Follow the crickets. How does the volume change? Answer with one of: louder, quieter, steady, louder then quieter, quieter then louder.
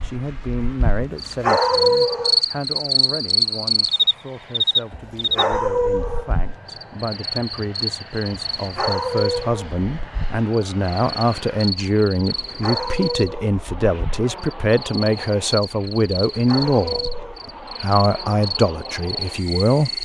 quieter.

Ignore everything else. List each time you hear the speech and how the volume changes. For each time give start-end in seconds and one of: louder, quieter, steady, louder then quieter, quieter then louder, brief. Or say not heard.
0.0-20.0 louder.